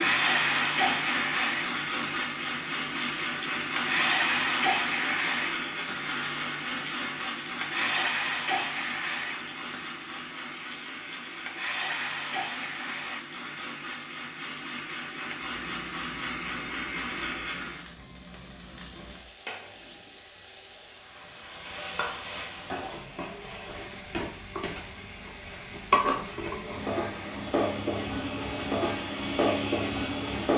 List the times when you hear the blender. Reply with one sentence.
You can hear the blender from 0.0 to 17.9 s and from 23.6 to 30.5 s.